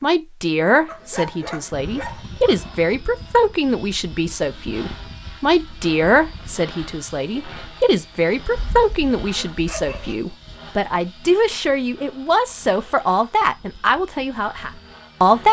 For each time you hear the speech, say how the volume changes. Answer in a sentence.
The speech can be heard from 0.0 to 15.4 s, at a steady volume.